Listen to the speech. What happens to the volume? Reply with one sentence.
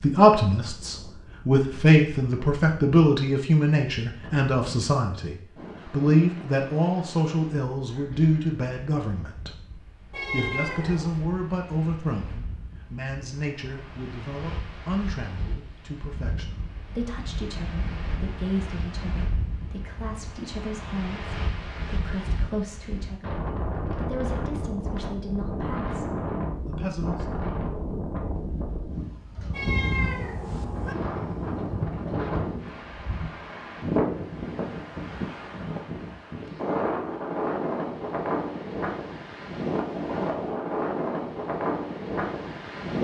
The volume of the speech goes down.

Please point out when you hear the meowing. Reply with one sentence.
The meowing can be heard from 10.1 to 11.2 s and from 29.5 to 30.9 s.